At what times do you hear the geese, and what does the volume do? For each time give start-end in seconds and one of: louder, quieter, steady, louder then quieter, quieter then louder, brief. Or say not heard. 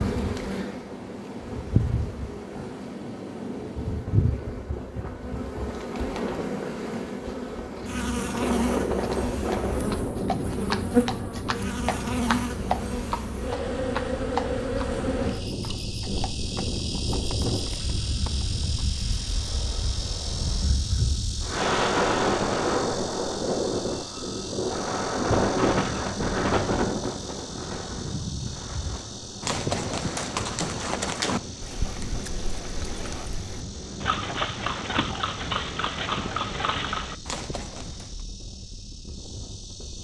not heard.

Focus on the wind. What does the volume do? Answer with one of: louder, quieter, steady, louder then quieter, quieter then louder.
louder then quieter.